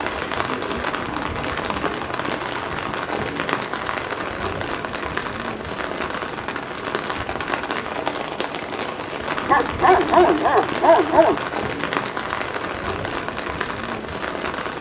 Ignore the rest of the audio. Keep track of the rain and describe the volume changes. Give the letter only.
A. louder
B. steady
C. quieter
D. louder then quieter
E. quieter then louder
B.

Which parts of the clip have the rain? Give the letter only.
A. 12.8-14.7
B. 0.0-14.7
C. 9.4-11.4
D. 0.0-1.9
B.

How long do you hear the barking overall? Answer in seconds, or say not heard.
2 s.